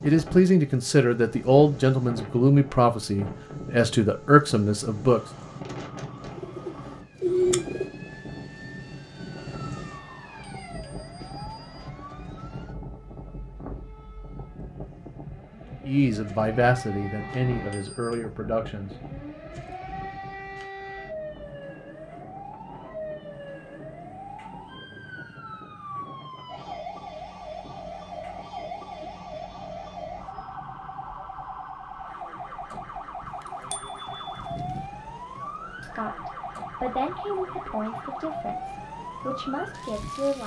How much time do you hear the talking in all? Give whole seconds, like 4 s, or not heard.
13 s.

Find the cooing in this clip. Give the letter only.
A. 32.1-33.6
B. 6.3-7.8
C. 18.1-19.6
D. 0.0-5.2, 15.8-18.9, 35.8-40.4
B.